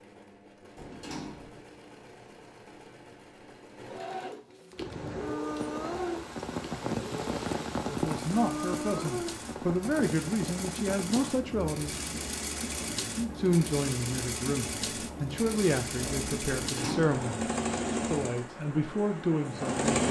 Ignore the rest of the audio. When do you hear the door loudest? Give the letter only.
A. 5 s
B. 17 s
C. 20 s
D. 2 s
B.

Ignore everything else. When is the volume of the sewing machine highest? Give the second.
20 s.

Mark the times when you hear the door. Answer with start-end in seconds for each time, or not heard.
0.8-1.6, 16.5-17.2.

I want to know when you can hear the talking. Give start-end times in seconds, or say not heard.
7.7-11.9, 13.2-20.0.